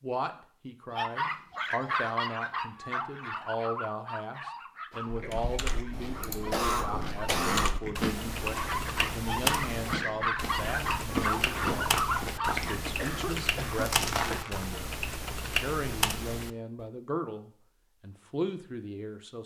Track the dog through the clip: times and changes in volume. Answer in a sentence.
You can hear the dog from 0.9 to 12.8 s, getting quieter then louder.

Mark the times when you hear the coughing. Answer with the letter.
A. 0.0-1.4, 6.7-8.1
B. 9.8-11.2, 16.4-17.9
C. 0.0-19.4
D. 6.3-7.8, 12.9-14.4
D.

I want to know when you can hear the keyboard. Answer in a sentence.
The keyboard can be heard from 5.2 to 16.5 s.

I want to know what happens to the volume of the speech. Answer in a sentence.
The loudness of the speech stays about the same.